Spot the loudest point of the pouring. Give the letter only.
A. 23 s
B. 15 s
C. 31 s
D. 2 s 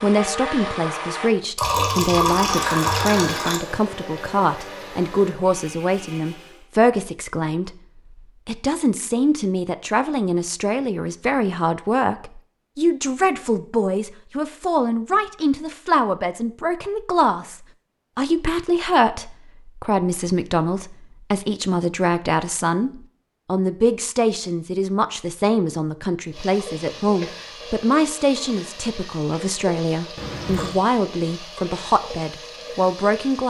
D.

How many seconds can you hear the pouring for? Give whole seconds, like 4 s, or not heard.
3 s.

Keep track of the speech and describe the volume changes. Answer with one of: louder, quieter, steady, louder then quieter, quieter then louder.
steady.